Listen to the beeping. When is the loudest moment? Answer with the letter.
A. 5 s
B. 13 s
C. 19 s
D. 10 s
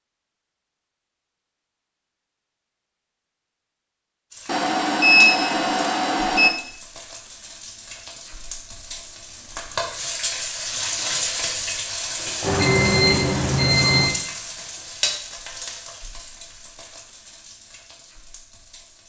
A.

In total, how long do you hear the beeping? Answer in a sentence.
The beeping can be heard for 4 seconds in total.